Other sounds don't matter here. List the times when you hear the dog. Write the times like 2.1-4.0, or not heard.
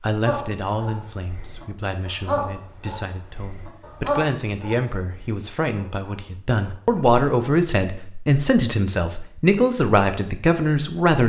0.2-6.9.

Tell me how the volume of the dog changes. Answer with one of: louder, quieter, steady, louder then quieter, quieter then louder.
louder then quieter.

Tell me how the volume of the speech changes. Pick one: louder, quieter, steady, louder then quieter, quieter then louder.
louder.